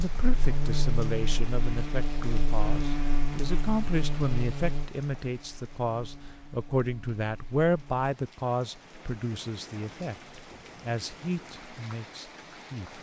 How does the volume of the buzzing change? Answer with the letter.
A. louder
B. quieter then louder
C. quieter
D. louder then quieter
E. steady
C.